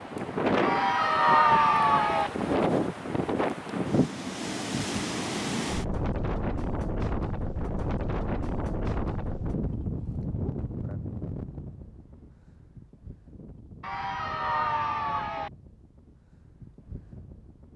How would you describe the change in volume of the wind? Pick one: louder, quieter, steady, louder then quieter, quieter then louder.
quieter.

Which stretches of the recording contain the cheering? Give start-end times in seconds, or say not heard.
0.6-2.3, 13.8-15.5.